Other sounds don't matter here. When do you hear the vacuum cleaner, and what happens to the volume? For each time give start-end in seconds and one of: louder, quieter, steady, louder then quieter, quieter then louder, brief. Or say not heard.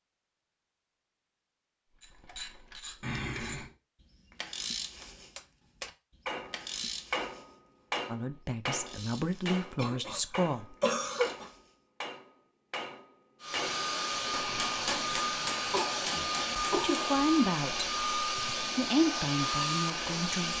13.4-20.5 steady.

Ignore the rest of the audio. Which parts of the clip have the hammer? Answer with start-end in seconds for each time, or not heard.
5.3-16.9.